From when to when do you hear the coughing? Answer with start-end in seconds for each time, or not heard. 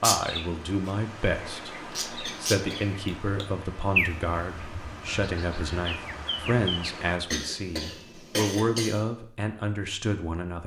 2.2-3.0, 7.3-9.0.